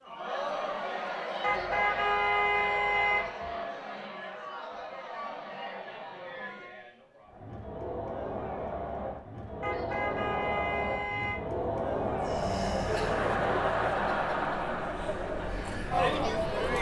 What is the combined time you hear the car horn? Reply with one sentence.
You can hear the car horn for 4 seconds altogether.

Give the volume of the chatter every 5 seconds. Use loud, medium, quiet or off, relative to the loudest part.
medium, medium, loud, loud.